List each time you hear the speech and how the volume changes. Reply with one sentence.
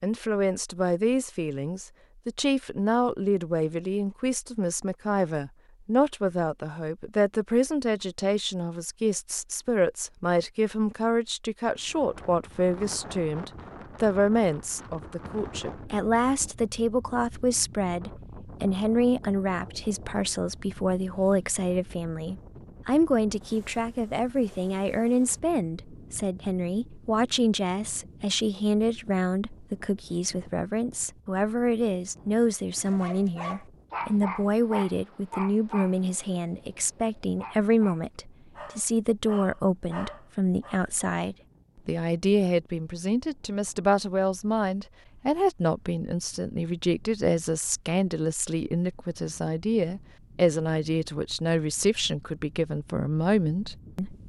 You can hear the speech from 0.0 to 54.2 s, at a steady volume.